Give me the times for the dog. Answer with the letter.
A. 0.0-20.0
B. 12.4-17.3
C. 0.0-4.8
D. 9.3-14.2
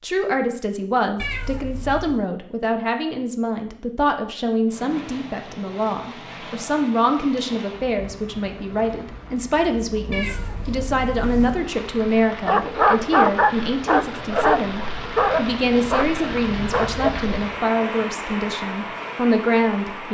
B.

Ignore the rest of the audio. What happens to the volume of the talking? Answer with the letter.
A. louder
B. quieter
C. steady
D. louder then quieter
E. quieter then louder
C.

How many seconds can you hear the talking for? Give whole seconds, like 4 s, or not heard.
20 s.